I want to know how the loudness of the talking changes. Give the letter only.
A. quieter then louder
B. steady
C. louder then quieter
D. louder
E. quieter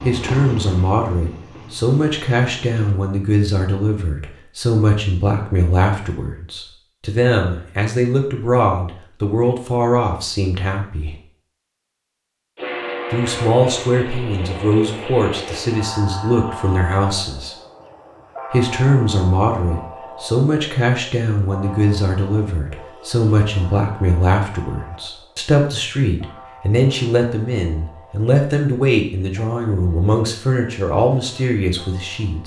B.